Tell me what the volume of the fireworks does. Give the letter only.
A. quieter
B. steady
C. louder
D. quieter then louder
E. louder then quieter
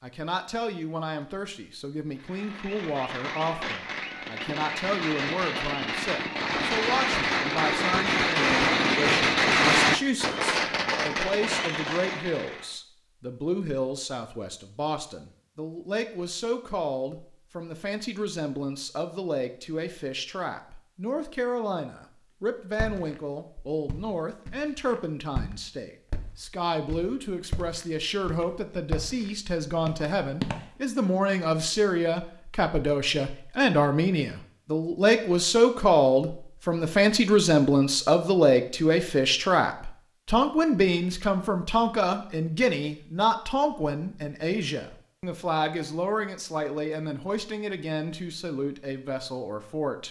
E.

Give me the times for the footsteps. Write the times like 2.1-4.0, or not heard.
22.8-30.6.